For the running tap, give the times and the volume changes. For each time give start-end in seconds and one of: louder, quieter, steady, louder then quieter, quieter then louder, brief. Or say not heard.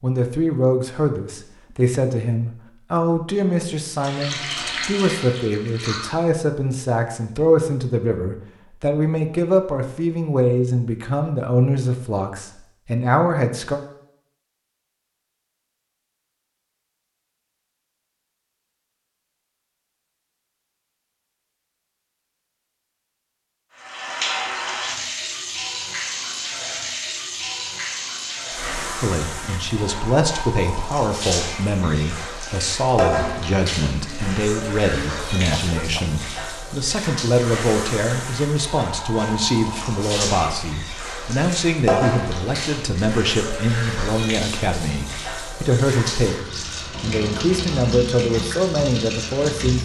4.0-6.2 brief
23.8-49.8 steady.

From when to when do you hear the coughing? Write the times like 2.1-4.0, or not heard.
35.5-36.2.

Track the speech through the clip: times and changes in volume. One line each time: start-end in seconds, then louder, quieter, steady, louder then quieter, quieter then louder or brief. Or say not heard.
0.0-13.8 steady
29.0-49.8 steady.